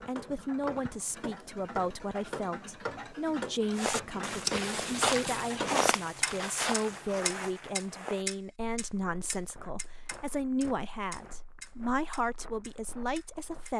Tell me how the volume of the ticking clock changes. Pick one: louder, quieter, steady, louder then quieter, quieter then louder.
louder then quieter.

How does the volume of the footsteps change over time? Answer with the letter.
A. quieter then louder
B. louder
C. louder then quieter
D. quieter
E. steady
D.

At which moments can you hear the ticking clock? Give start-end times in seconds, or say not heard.
0.0-13.7.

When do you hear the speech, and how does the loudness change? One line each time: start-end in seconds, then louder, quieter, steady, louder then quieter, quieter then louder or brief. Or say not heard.
0.1-13.7 steady.